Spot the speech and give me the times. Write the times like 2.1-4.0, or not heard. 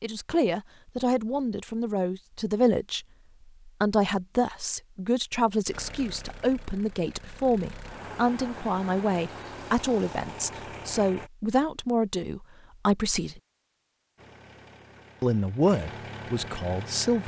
0.0-3.0, 3.6-13.4, 15.2-17.2.